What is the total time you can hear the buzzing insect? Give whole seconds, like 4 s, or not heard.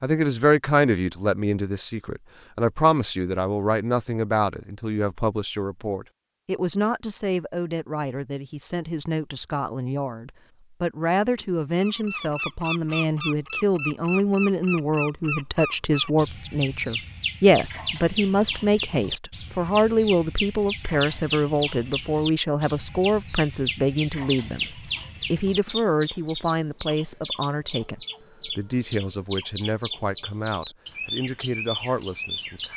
not heard.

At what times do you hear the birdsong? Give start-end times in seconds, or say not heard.
11.8-32.7.